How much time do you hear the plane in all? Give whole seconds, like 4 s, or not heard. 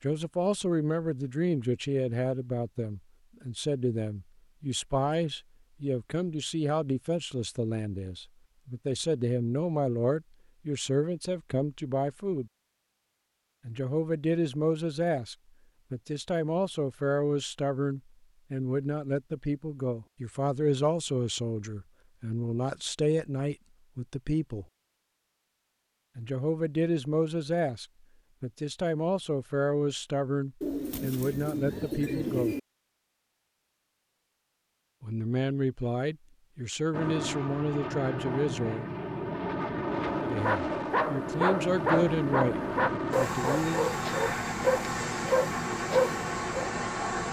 10 s.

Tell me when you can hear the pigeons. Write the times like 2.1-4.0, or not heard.
30.6-32.6.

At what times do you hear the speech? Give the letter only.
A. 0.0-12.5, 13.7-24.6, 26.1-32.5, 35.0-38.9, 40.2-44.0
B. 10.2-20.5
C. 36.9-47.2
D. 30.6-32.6
A.